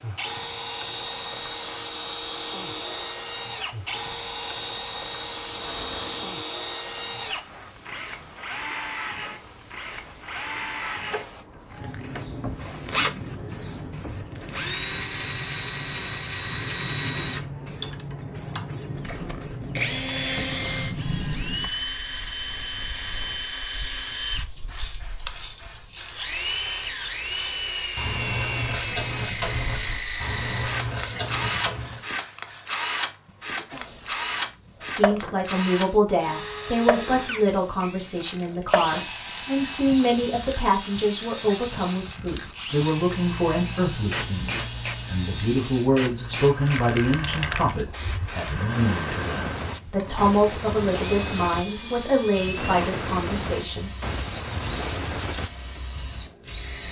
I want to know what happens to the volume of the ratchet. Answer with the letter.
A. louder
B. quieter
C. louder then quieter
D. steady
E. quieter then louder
D.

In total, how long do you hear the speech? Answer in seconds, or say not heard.
19 s.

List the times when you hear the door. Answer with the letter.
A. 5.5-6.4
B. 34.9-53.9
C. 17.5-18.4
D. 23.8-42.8
A.